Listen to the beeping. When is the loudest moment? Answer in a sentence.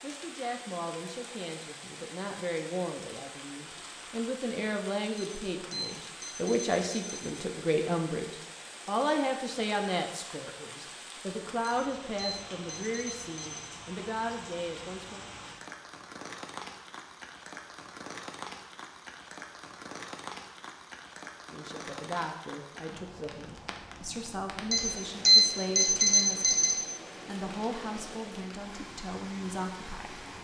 The volume of the beeping peaks at 25 seconds.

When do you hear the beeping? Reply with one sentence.
You can hear the beeping from 5.2 to 7.2 s, from 11.6 to 13.7 s and from 24.7 to 26.8 s.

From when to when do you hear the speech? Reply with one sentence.
You can hear the speech from 0.0 to 15.2 s and from 21.5 to 30.4 s.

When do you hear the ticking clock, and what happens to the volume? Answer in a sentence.
The ticking clock can't be heard in this clip.